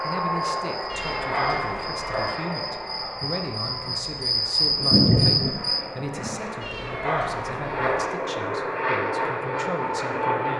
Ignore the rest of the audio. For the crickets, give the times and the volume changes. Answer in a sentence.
You can hear the crickets from 0.0 to 5.8 s, getting louder.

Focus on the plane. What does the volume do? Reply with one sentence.
The loudness of the plane goes down, then up.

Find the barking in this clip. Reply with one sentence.
The barking can't be heard in this clip.